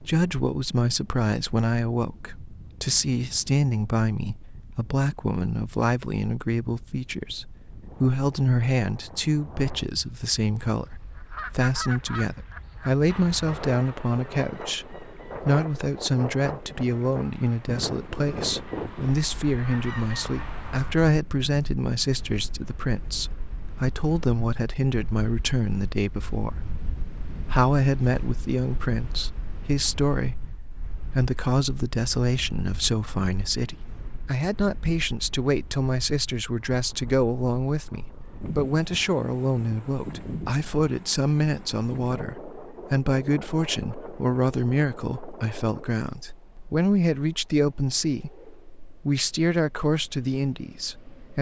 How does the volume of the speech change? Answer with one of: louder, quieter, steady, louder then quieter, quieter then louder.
steady.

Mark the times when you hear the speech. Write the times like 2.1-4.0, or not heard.
0.0-51.3.